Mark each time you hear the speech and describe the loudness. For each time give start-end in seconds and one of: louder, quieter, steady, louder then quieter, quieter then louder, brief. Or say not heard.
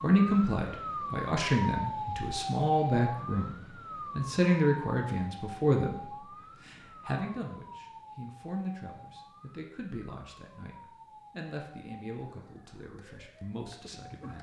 0.0-14.3 quieter.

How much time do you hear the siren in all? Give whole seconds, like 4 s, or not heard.
14 s.